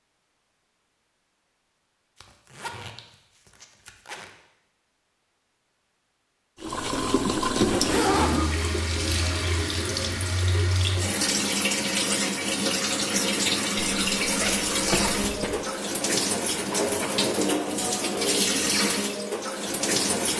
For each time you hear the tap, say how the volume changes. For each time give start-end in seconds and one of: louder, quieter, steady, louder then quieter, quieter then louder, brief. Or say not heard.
6.6-20.3 steady.